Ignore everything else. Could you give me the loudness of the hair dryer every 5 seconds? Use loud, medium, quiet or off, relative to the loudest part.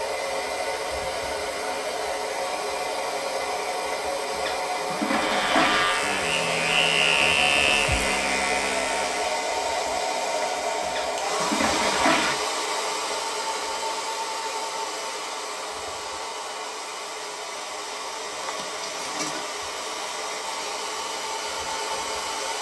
loud, loud, loud, medium, loud.